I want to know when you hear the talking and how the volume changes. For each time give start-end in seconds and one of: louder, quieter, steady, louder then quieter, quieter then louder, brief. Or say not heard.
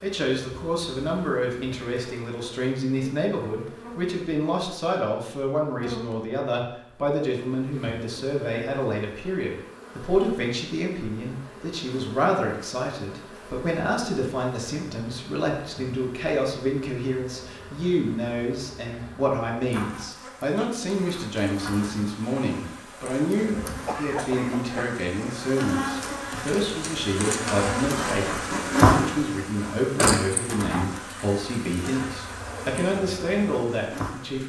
0.0-34.4 steady.